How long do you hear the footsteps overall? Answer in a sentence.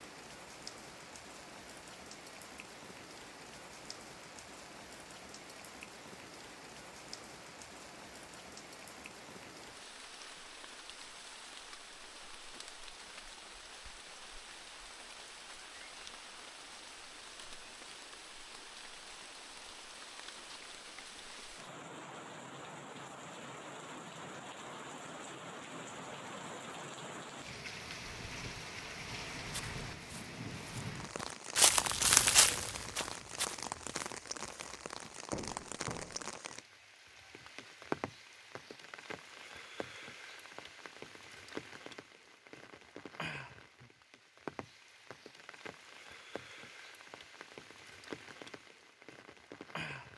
You can hear the footsteps for 7 seconds altogether.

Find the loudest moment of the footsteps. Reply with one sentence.
The volume of the footsteps peaks at 32 seconds.